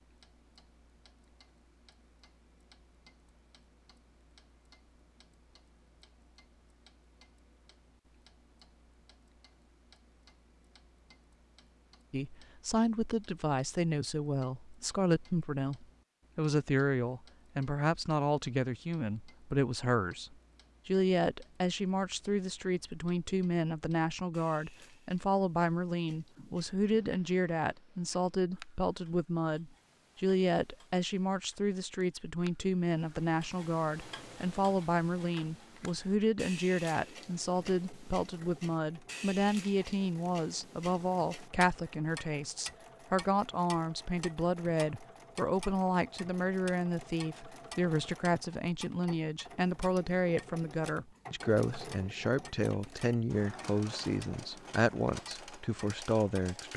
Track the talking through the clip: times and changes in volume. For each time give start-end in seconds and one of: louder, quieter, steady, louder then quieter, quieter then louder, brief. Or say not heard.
12.1-56.7 steady.